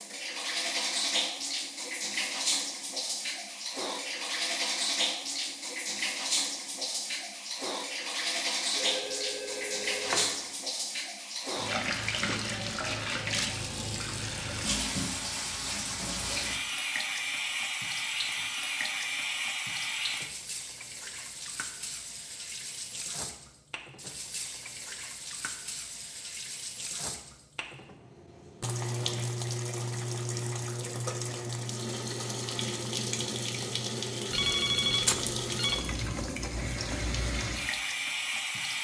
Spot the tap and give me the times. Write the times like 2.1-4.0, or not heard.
0.0-38.8.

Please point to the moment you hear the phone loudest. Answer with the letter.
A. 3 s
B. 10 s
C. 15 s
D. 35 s
D.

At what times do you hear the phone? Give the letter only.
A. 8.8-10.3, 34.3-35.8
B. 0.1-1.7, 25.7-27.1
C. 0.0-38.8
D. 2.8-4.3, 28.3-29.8
A.